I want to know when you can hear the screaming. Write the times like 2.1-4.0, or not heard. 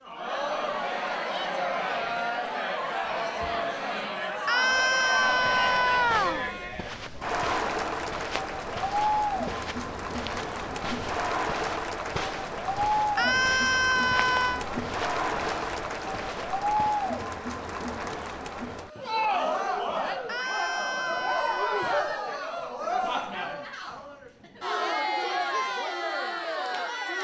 4.5-6.5, 13.2-14.7, 20.2-22.1.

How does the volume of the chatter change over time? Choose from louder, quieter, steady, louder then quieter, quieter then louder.
steady.